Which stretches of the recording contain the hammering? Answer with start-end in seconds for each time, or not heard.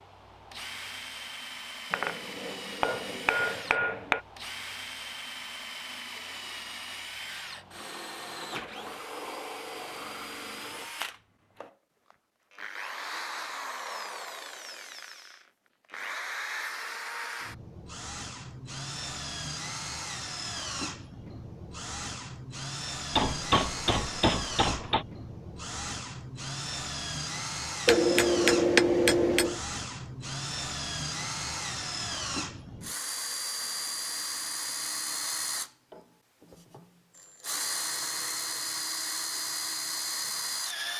1.9-4.2, 23.1-25.1, 27.9-29.6.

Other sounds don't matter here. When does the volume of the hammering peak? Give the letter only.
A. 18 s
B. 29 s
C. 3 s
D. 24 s
B.